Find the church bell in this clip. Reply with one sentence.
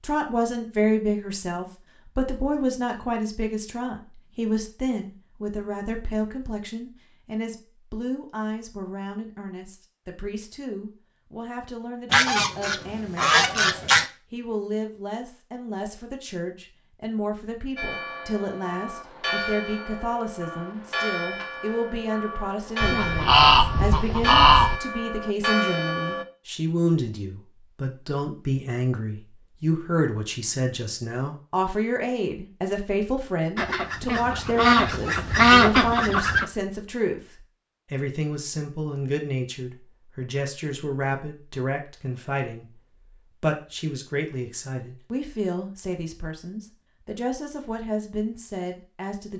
You can hear the church bell from 17.8 to 26.2 s.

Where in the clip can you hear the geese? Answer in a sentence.
The geese can be heard from 12.1 to 14.1 s, from 22.8 to 24.8 s and from 33.5 to 36.5 s.